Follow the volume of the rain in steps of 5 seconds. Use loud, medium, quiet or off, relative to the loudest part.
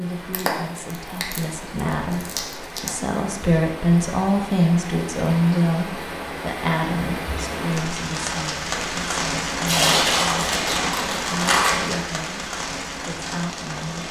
medium, loud, loud.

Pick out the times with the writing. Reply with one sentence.
You can't hear the writing here.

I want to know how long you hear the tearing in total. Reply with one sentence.
The tearing can be heard for 5 seconds in total.